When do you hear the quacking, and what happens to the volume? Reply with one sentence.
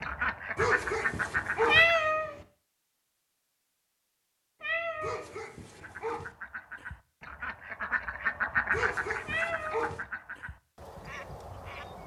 You can hear the quacking briefly from 0.0 to 2.0 s; and from 5.8 to 12.0 s, getting louder then quieter.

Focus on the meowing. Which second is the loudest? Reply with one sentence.
The loudest moment of the meowing is at 2 seconds.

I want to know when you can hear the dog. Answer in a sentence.
The dog can be heard from 0.6 to 1.9 s, from 5.0 to 6.3 s and from 8.7 to 10.1 s.